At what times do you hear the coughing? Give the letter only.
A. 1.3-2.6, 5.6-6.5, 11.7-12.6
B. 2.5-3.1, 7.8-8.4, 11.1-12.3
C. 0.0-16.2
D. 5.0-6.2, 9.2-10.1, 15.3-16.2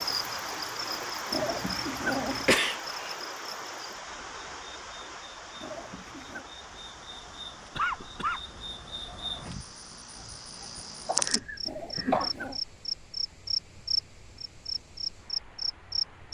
B.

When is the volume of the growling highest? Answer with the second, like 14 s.
2 s.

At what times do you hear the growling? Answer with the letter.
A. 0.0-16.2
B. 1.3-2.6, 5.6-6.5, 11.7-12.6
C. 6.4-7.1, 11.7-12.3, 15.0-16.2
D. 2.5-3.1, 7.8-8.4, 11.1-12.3
B.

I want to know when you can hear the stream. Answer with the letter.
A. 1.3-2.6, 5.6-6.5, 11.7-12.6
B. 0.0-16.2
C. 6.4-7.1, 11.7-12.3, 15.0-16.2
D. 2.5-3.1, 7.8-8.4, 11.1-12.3
B.